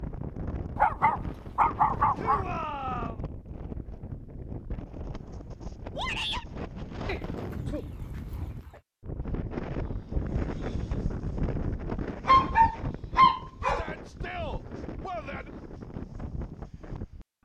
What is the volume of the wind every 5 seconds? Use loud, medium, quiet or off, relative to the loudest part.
loud, loud, loud, medium.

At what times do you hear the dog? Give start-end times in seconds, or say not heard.
0.8-2.5, 7.0-8.8, 12.2-13.8.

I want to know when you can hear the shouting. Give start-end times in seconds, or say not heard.
2.1-3.2, 6.0-6.5, 13.6-15.5.